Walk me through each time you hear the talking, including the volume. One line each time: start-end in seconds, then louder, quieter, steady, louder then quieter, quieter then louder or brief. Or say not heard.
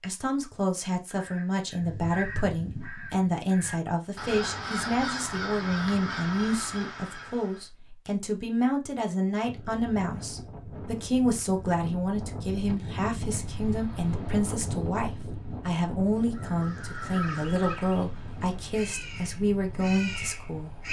0.0-20.8 steady.